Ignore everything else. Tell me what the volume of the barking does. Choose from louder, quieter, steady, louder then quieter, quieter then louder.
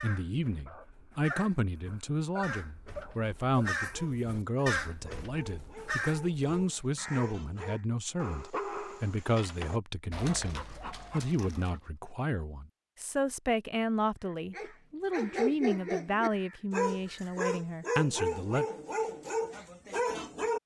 louder.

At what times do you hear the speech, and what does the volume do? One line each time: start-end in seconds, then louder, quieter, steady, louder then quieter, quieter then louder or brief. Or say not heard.
0.0-18.6 steady.